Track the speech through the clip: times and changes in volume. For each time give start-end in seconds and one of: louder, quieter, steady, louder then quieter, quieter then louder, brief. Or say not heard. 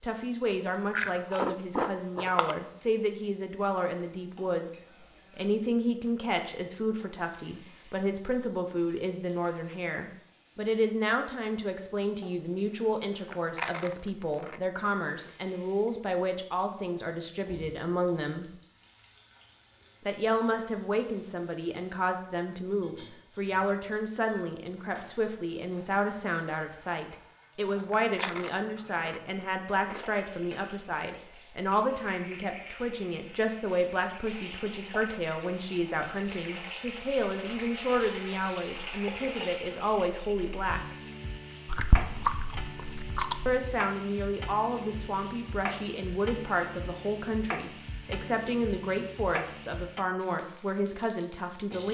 0.0-18.5 steady
20.0-41.0 steady
43.5-51.8 steady.